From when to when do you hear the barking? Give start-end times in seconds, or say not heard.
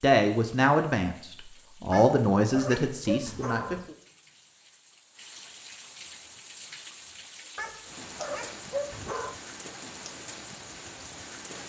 1.9-3.9, 7.5-9.3.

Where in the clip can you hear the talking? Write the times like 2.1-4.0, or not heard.
0.0-3.8.